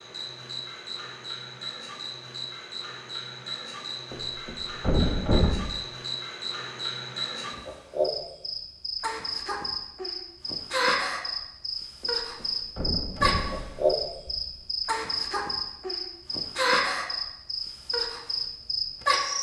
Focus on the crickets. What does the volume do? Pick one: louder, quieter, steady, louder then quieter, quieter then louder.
louder.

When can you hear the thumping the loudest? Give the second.
5 s.